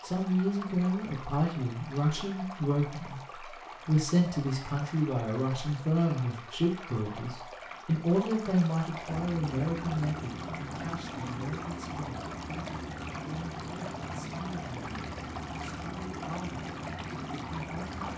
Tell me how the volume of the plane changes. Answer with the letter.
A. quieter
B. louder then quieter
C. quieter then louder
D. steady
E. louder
D.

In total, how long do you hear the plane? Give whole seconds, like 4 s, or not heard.
9 s.